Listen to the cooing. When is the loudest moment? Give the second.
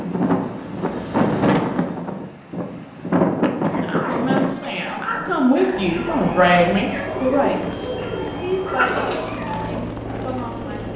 9 s.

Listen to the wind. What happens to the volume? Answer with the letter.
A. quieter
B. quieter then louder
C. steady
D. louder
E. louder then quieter
A.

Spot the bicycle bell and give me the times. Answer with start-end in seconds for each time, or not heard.
not heard.